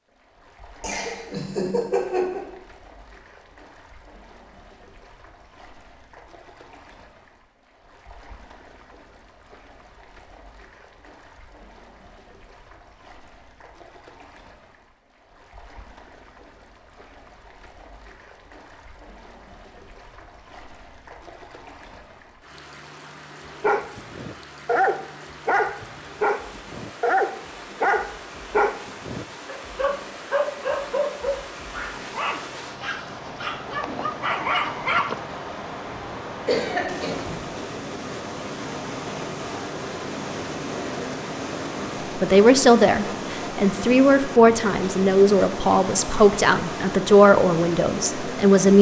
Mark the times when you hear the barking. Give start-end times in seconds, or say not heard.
23.6-35.2.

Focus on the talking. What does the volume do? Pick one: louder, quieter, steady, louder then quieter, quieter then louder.
steady.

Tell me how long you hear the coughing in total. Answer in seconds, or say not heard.
3 s.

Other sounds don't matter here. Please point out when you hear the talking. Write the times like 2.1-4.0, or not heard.
42.1-48.7.